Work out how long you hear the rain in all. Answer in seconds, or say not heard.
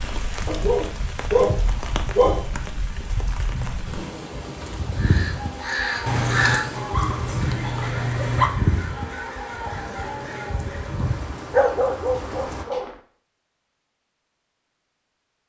13 s.